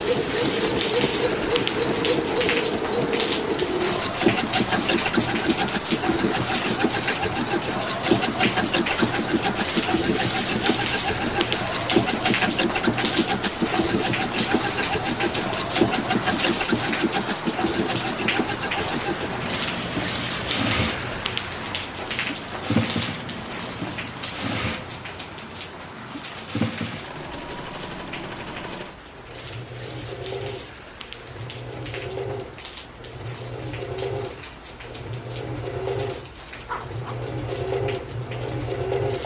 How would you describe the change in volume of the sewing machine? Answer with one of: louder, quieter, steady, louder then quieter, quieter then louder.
quieter.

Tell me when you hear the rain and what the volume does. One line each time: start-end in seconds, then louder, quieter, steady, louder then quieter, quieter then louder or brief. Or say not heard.
0.0-39.2 quieter.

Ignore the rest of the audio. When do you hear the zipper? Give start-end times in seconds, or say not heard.
36.6-37.2.